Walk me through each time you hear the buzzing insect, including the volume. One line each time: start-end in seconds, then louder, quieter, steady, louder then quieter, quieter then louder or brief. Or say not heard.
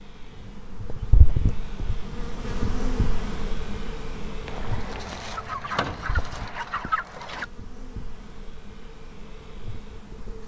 0.0-10.4 quieter.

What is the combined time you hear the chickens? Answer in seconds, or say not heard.
3 s.